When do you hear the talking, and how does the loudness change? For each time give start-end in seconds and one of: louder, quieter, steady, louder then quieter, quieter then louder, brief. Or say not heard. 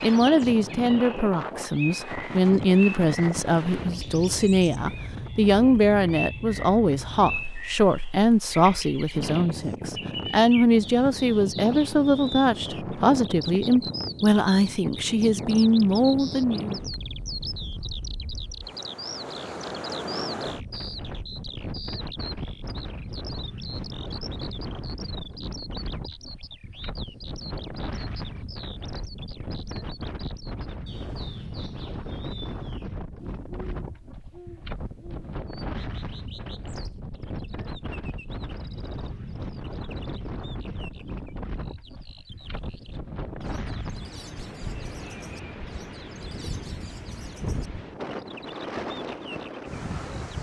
0.0-16.8 steady.